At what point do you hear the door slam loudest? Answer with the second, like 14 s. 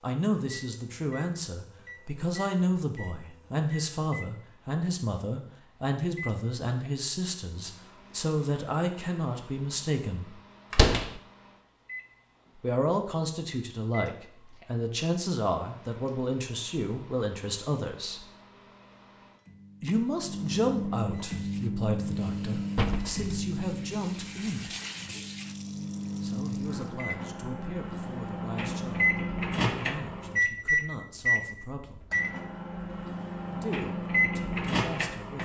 11 s.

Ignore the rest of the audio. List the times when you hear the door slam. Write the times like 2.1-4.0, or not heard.
10.7-11.1, 22.8-23.3.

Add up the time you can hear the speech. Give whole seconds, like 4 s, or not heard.
29 s.